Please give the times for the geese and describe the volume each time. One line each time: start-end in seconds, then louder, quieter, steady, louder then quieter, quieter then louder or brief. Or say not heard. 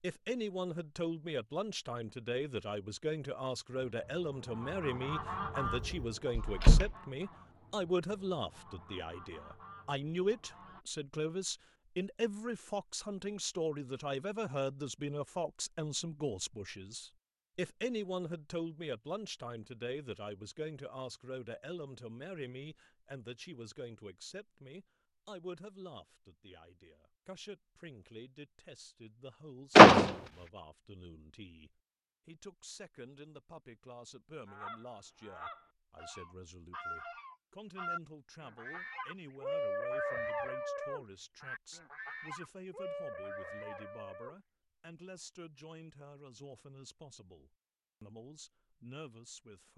3.9-10.8 quieter
34.5-44.4 louder then quieter.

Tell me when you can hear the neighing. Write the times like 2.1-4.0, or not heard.
not heard.